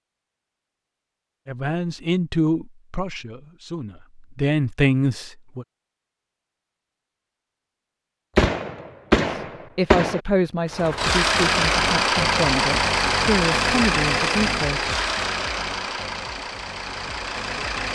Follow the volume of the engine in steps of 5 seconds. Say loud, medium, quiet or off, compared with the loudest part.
off, off, loud, medium.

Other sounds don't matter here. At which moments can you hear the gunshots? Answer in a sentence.
The gunshots can be heard from 8.3 to 10.2 s.